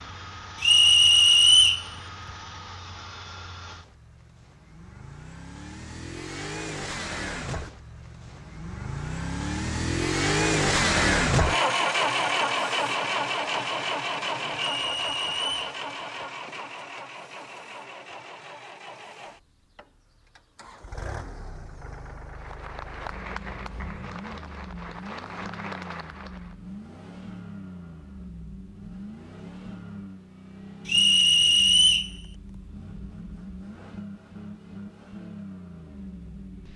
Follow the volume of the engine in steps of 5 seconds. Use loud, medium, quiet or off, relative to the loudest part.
quiet, medium, loud, quiet, quiet, quiet, quiet, quiet.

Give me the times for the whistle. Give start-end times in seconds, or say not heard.
0.6-1.9, 14.6-15.8, 30.9-32.1.